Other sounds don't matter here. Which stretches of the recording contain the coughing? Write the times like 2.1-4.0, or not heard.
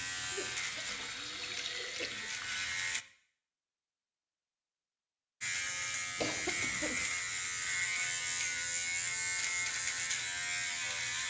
0.3-2.3, 6.2-7.0.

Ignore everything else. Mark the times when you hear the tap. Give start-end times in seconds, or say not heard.
0.0-3.0.